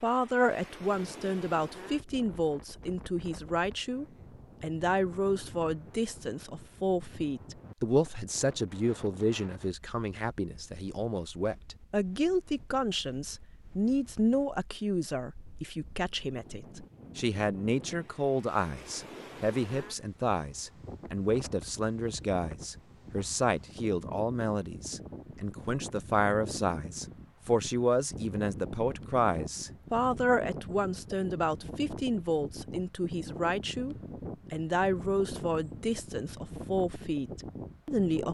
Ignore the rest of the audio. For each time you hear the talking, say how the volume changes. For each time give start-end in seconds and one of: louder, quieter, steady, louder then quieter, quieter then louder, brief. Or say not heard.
0.0-38.2 steady.